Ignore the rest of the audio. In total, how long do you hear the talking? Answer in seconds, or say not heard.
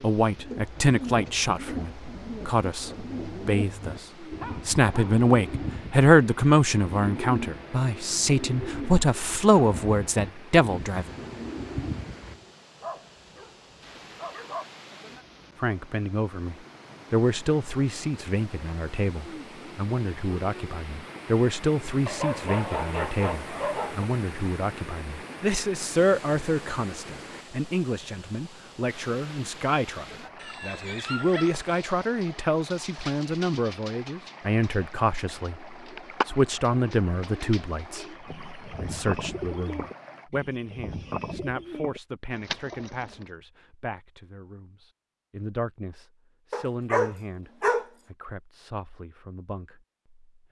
45 s.